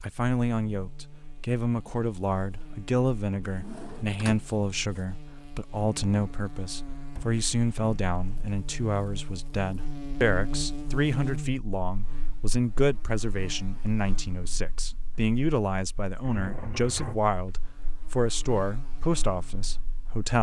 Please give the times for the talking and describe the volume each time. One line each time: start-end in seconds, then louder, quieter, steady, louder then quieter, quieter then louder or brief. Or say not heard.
0.0-20.3 steady.